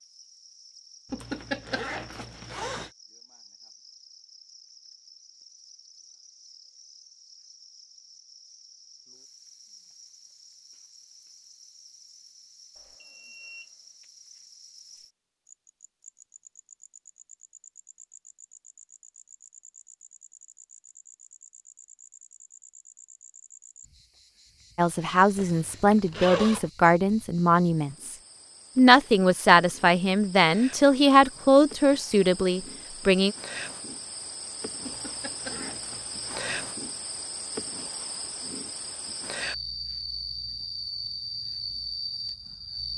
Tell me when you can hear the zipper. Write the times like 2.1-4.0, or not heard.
1.1-2.9, 25.4-26.7, 34.8-36.5.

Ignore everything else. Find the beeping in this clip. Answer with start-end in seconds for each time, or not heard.
12.8-13.7.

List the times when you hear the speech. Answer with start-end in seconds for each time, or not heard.
24.8-28.1, 28.8-33.4.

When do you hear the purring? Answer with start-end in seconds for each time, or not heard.
not heard.